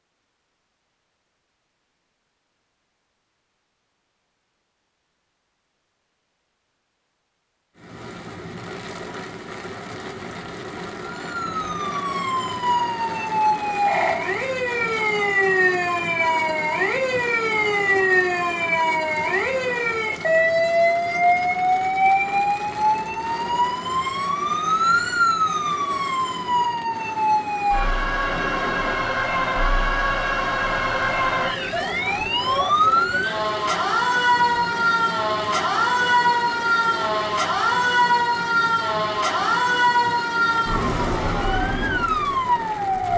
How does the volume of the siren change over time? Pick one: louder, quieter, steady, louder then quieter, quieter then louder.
steady.